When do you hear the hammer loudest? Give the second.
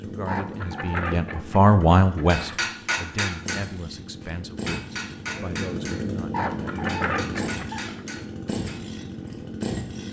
3 s.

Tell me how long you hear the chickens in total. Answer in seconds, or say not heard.
4 s.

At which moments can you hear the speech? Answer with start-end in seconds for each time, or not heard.
0.0-7.2.